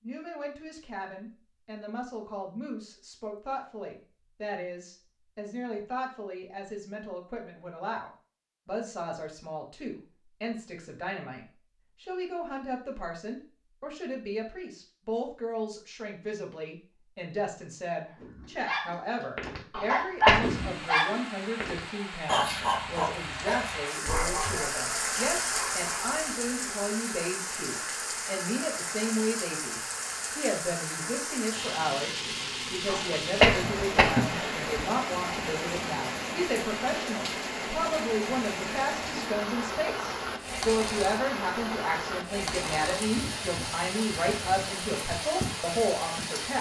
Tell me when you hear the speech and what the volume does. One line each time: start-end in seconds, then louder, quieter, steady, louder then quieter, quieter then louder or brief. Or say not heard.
0.0-46.5 louder.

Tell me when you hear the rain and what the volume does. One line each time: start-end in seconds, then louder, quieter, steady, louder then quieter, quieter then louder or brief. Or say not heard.
20.4-46.5 steady.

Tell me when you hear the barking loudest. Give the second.
20 s.